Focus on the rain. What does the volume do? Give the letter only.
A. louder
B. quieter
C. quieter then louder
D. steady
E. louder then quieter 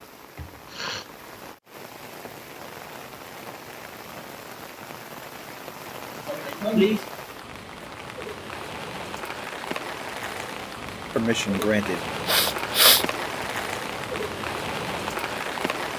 A.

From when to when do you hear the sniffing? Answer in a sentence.
The sniffing can be heard from 0.3 to 1.1 s, from 6.2 to 7.0 s and from 11.2 to 13.1 s.